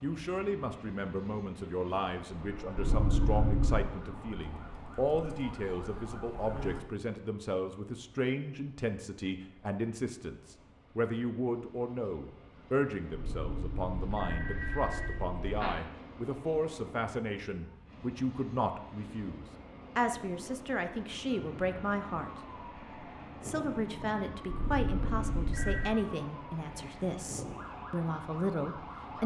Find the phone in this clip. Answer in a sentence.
The phone can be heard from 2.8 to 3.8 s, from 13.1 to 15.8 s and from 24.5 to 25.9 s.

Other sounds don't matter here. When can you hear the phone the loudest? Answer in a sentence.
The loudest moment of the phone is at 3 seconds.